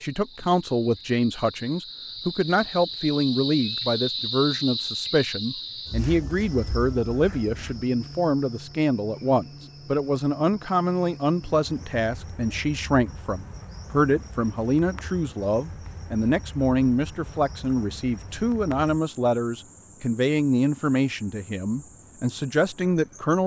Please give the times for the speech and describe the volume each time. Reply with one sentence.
The speech can be heard from 0.0 to 23.4 s, at a steady volume.